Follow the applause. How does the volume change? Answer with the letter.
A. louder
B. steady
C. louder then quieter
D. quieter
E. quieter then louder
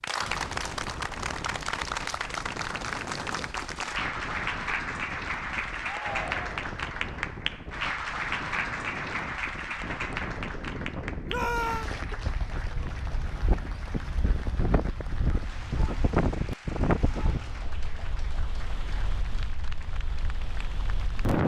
D.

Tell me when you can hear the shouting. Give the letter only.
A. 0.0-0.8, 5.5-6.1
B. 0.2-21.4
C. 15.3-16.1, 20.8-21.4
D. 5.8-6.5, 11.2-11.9
D.